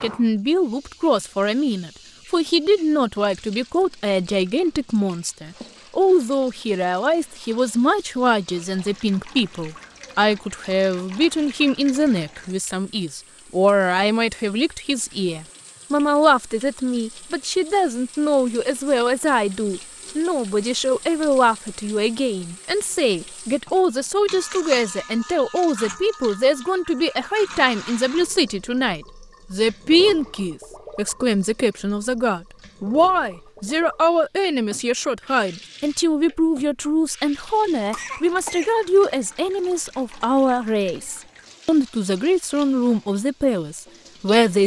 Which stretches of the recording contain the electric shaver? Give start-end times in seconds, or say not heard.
not heard.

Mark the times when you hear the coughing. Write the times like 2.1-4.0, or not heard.
37.9-38.8.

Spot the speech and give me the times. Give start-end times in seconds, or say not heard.
0.0-44.6.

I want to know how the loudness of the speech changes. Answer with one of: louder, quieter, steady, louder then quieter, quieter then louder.
steady.